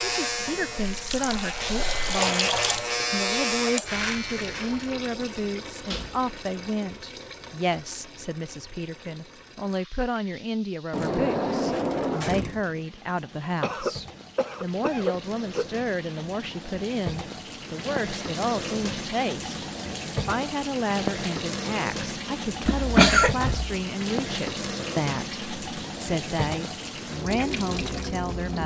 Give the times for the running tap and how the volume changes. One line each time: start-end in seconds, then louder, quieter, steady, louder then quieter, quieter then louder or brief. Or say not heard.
0.1-28.6 quieter then louder.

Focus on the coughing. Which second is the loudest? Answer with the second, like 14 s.
23 s.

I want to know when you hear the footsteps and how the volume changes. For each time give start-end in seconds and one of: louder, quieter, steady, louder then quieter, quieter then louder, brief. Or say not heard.
not heard.